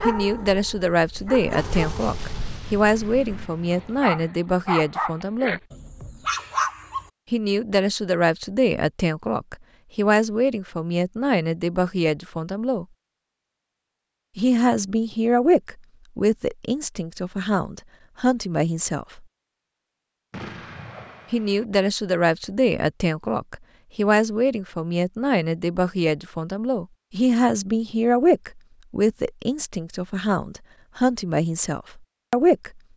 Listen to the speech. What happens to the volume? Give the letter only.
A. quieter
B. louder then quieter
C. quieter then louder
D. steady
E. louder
D.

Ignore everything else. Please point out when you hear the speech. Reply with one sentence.
The speech can be heard from 0.0 to 5.6 s, from 7.3 to 12.8 s, from 14.3 to 19.2 s and from 21.3 to 32.8 s.